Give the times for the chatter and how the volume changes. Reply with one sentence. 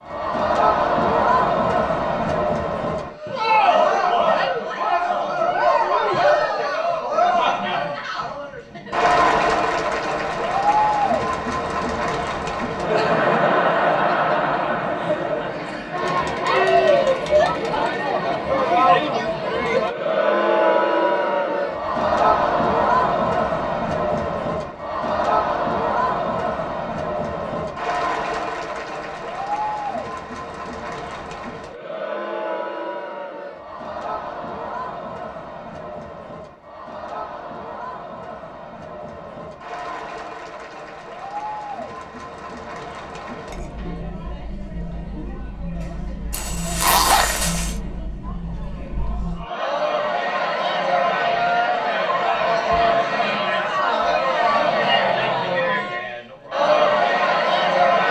You can hear the chatter from 0.0 to 58.0 s, getting quieter then louder.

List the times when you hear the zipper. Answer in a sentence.
You can hear the zipper from 46.3 to 47.8 s.